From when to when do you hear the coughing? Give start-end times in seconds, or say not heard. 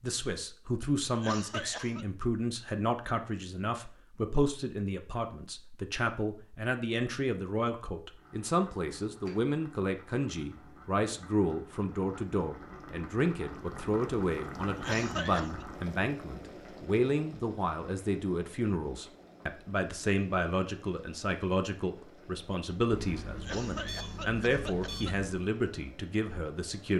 1.1-2.0, 14.7-15.7, 23.4-25.1.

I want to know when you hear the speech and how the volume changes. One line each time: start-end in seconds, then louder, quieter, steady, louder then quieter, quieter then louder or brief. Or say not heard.
0.0-26.9 steady.